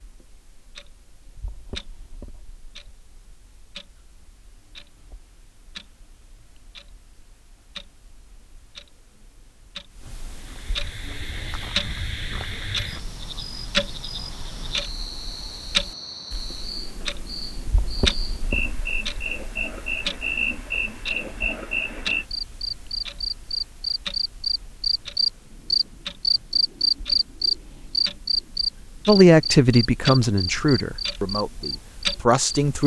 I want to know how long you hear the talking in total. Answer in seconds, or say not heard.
4 s.